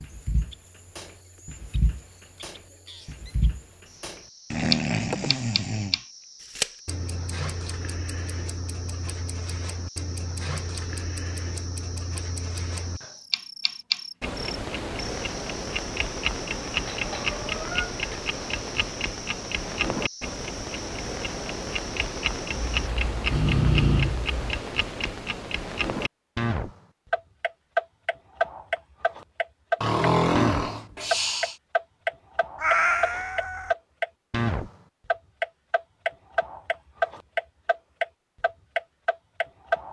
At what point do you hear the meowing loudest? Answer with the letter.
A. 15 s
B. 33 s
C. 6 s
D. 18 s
B.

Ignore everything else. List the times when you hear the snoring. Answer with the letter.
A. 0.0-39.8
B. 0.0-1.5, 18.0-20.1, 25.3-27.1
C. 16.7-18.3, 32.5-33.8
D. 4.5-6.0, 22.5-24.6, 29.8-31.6
D.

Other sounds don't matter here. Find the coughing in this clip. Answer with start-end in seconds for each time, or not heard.
not heard.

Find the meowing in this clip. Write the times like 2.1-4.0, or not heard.
16.7-18.3, 32.5-33.8.